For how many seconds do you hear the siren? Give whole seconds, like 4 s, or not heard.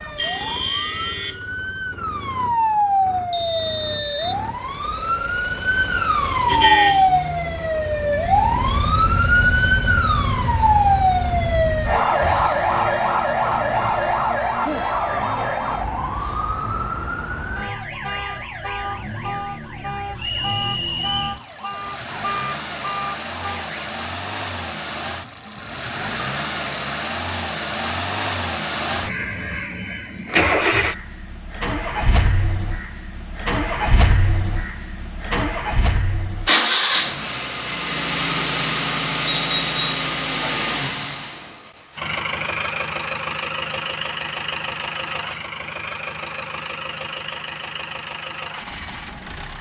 24 s.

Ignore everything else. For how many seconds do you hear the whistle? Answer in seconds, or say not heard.
3 s.